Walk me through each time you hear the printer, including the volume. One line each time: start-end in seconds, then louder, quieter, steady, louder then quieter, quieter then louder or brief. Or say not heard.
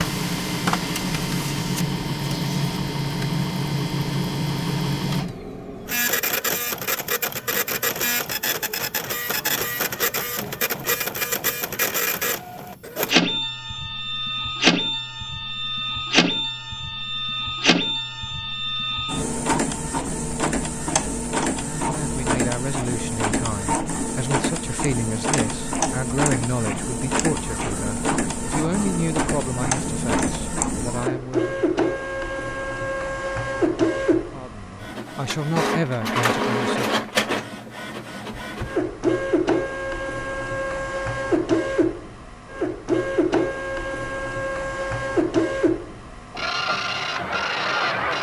0.0-48.1 steady.